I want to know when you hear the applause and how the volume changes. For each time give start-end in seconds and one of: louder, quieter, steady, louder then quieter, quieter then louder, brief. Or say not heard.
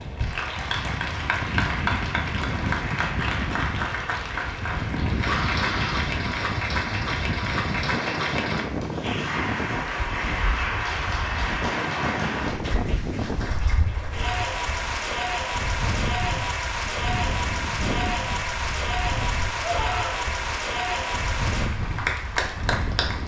0.0-23.2 steady.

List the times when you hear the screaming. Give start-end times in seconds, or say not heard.
5.2-6.0, 19.6-20.2.